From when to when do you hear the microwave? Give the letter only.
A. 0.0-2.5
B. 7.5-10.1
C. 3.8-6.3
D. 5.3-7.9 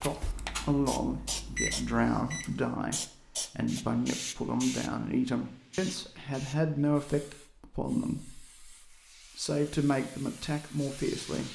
A.